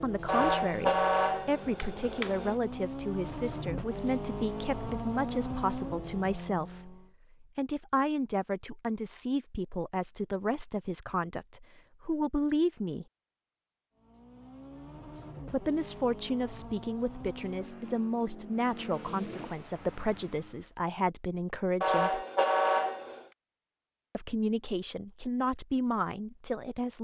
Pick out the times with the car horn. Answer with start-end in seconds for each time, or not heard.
0.2-2.5, 21.8-23.2.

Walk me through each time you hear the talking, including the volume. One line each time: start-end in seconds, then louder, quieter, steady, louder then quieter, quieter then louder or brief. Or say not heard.
0.0-13.1 steady
15.5-22.2 steady
24.1-26.9 brief.